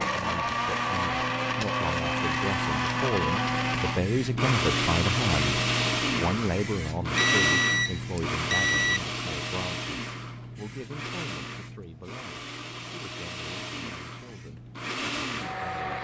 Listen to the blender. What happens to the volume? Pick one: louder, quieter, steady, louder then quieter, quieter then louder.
quieter.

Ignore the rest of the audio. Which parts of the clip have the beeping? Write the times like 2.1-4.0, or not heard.
7.2-9.0.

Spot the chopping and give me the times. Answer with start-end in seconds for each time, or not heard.
not heard.